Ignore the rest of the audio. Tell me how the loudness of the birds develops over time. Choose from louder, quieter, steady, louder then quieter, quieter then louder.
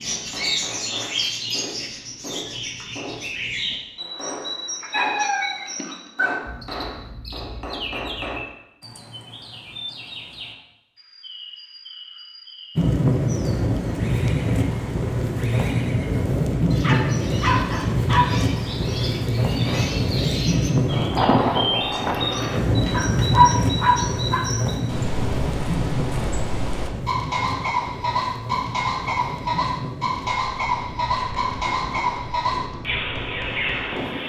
quieter then louder.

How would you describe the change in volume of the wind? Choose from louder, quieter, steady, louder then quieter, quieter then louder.
quieter.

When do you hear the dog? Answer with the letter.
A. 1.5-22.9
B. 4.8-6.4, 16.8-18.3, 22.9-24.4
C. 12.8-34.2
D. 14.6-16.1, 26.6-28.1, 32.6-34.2
B.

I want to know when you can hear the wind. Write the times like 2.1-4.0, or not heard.
12.8-34.2.